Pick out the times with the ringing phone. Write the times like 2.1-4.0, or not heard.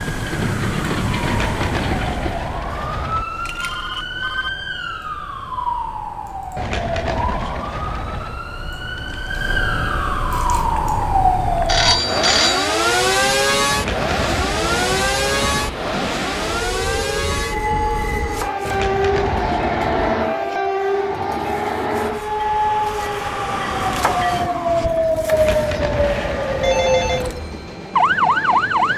2.6-4.5, 11.7-12.8, 26.6-27.2.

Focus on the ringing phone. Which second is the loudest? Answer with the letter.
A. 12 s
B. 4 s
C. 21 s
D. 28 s
A.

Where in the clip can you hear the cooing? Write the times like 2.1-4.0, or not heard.
1.2-3.2, 6.5-8.4, 13.7-15.7, 18.6-20.1, 25.3-27.4.